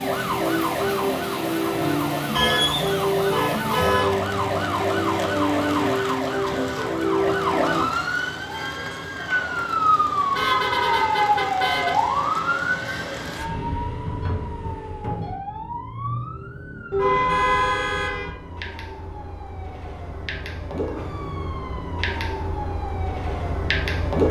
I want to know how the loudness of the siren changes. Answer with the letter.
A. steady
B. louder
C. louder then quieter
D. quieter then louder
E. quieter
E.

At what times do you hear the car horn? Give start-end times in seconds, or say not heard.
2.4-4.2, 10.3-11.9, 16.9-18.3.